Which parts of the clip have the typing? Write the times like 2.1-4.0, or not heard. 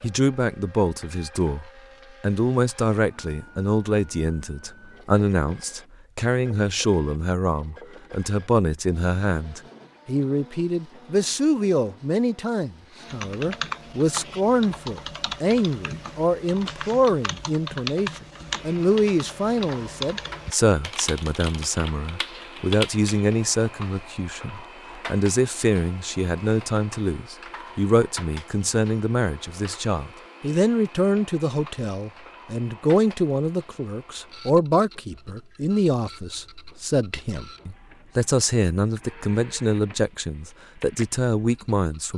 13.1-23.2.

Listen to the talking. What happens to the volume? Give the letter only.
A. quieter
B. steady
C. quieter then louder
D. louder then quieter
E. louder
B.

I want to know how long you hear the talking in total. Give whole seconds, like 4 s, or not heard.
42 s.